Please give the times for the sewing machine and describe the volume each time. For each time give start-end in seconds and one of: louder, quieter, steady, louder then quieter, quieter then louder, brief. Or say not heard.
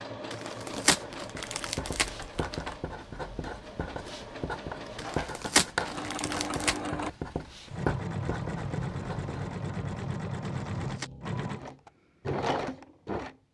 0.0-13.3 louder.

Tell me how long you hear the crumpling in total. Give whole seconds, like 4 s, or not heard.
5 s.